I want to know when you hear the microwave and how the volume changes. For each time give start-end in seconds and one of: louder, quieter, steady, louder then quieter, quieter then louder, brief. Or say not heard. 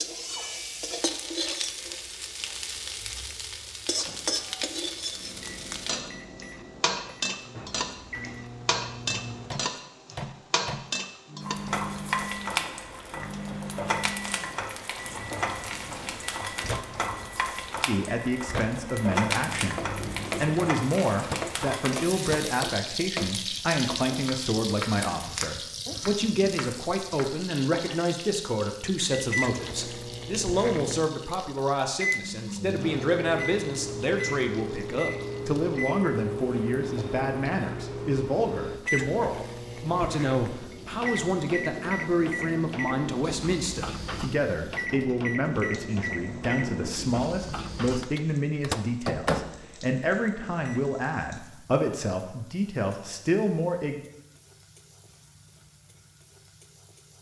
4.0-22.6 louder
29.1-50.9 steady.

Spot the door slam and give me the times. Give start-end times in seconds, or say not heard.
not heard.